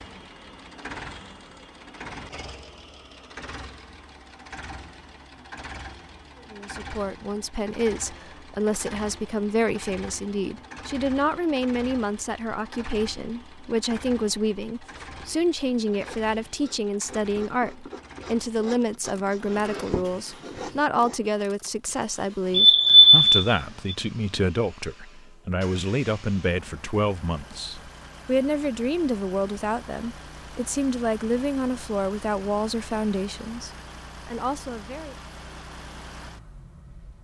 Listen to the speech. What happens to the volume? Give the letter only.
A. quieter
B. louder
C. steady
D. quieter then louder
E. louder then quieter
C.